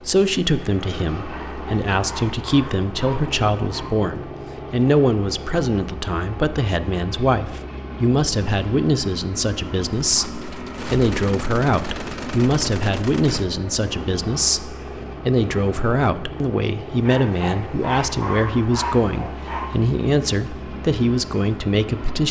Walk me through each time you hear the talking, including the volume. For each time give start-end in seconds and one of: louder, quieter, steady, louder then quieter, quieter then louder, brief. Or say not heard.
0.1-22.2 steady.